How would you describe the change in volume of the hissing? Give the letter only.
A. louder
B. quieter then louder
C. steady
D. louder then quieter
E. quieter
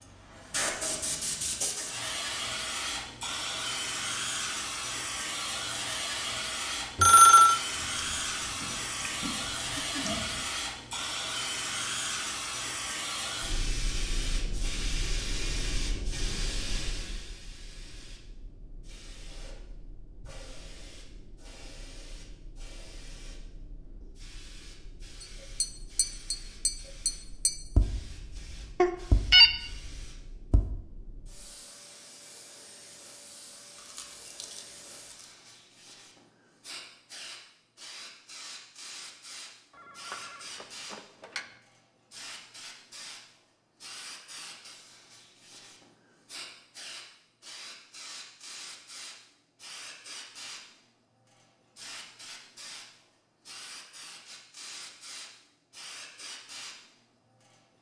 B.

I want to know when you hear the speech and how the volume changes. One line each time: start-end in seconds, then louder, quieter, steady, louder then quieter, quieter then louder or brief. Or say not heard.
not heard.